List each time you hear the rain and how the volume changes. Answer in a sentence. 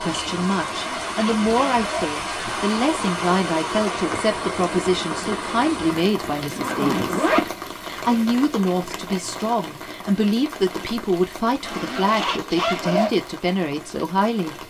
You can hear the rain from 0.0 to 14.6 s, getting quieter.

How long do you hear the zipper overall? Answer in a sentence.
The zipper can be heard for 4 seconds in total.